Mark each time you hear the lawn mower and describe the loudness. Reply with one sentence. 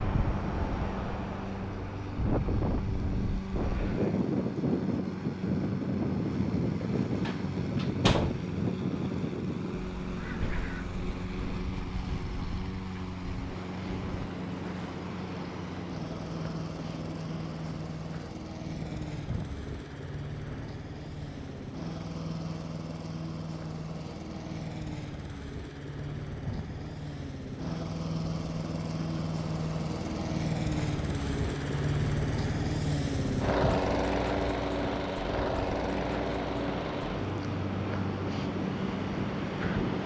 The lawn mower can be heard from 0.0 to 40.0 s, getting louder.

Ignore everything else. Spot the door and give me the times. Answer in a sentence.
You can hear the door from 7.2 to 8.4 s.